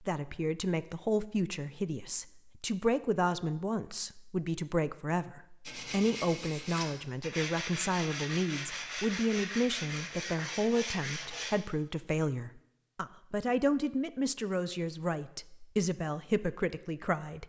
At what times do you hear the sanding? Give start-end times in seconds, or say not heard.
5.7-11.5.